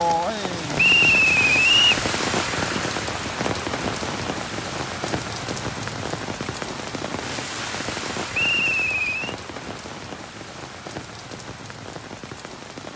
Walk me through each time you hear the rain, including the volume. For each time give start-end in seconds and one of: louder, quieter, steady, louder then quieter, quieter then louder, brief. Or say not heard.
0.0-12.9 quieter.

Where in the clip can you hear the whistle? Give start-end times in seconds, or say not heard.
0.8-2.0, 8.3-9.3.